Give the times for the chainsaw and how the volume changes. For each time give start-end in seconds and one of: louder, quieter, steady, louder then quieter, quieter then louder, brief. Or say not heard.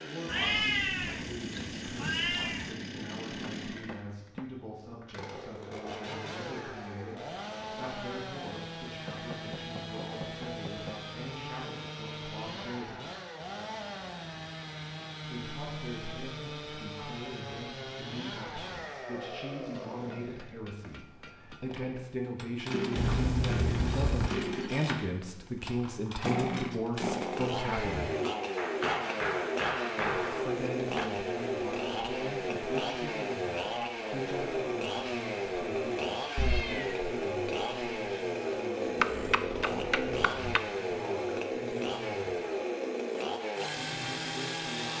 0.0-44.9 louder.